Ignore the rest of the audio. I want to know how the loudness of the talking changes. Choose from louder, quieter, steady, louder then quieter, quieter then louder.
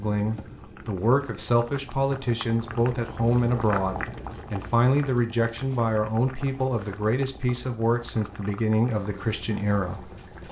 steady.